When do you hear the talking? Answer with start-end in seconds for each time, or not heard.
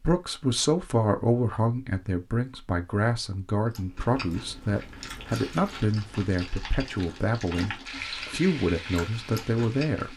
0.0-10.1.